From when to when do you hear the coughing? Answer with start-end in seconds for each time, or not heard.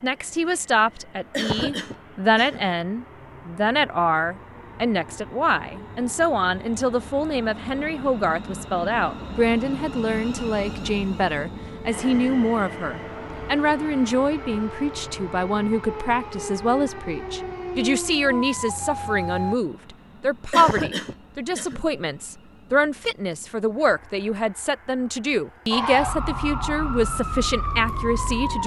1.3-2.6, 20.5-21.9.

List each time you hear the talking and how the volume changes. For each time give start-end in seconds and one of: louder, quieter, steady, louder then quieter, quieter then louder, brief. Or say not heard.
0.0-28.6 steady.